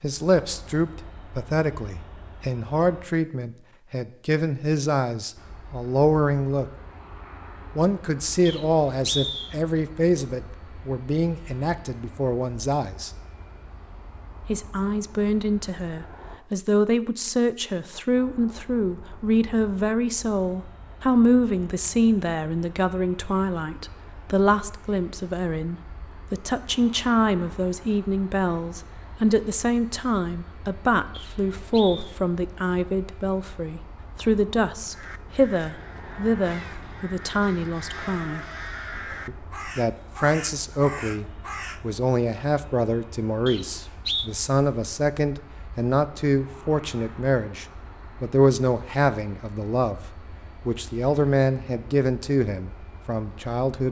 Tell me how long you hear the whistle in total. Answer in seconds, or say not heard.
3 s.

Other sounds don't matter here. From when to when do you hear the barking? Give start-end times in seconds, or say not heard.
not heard.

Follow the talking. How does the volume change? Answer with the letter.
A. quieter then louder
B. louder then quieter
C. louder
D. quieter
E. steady
E.